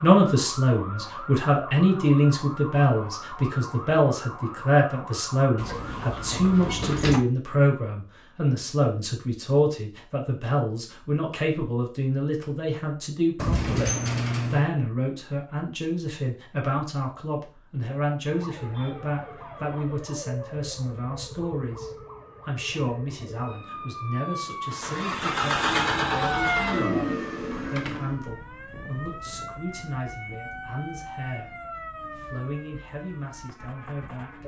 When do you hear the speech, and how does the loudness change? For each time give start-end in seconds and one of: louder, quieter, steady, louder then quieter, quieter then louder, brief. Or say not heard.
0.0-34.4 quieter.